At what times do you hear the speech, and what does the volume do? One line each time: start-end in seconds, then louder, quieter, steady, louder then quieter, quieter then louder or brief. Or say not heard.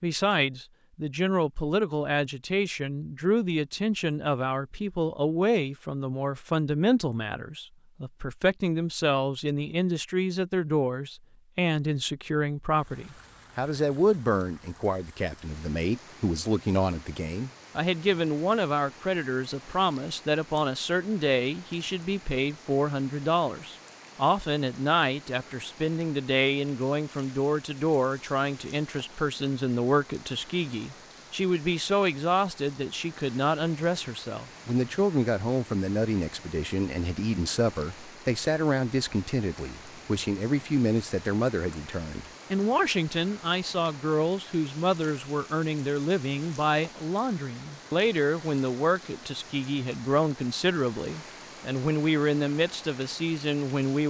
0.0-54.0 steady.